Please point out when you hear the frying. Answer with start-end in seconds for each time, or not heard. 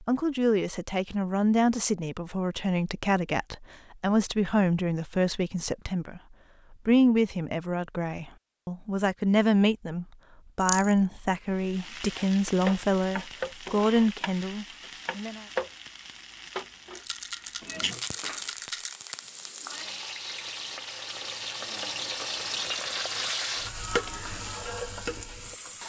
11.6-25.8.